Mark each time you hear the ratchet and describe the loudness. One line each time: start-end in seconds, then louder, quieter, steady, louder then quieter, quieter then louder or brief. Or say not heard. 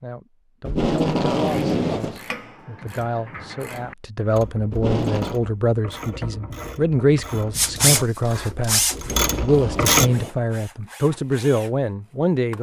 1.4-10.1 louder.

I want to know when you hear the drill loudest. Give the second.
8 s.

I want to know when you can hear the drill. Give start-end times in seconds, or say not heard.
7.5-12.5.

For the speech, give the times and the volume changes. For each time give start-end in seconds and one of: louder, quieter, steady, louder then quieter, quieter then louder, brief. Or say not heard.
0.0-12.5 louder.